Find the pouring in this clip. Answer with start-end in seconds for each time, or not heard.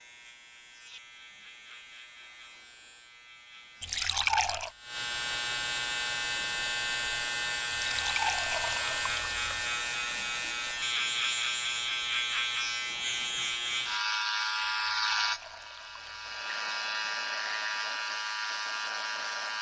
3.8-4.7, 7.7-9.6, 14.6-16.2.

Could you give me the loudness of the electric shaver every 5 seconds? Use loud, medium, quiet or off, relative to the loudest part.
quiet, loud, loud, loud.